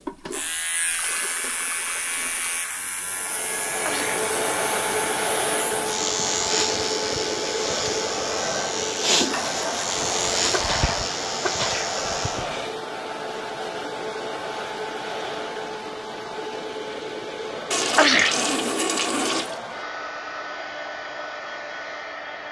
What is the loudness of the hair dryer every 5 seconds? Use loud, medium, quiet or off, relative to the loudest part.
loud, loud, loud, medium, medium.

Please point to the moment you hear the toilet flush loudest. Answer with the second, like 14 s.
19 s.